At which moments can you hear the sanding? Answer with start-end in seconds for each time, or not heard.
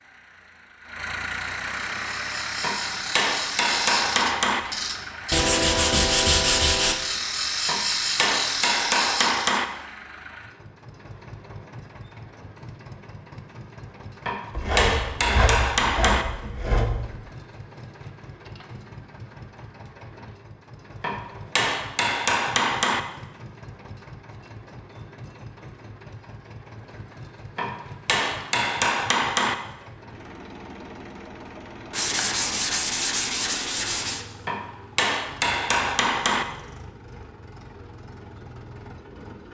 5.3-7.0, 14.6-17.1, 31.9-34.2.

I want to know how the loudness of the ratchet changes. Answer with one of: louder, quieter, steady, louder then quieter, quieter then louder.
louder.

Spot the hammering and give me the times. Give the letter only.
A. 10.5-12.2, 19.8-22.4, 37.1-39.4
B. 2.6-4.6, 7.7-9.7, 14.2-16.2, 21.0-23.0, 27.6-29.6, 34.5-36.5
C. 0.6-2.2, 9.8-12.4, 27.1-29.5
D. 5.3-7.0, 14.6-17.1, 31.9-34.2
B.